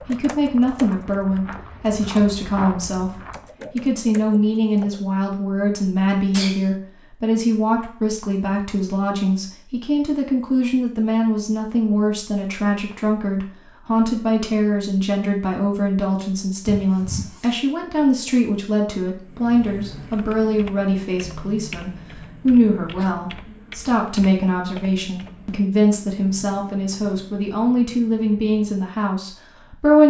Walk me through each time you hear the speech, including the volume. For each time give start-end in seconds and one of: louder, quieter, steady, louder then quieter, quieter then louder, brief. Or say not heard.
0.0-30.0 steady.